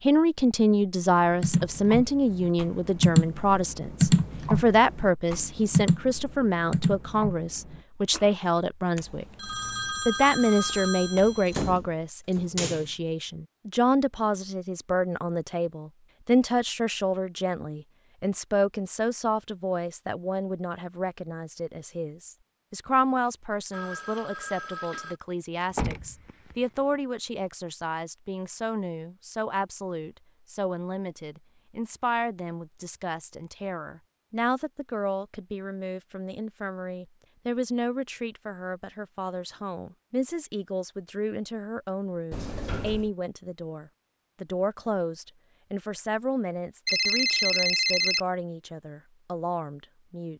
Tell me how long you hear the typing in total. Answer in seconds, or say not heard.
7 s.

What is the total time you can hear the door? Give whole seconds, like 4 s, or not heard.
3 s.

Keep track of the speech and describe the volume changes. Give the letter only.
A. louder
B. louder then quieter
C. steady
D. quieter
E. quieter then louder
D.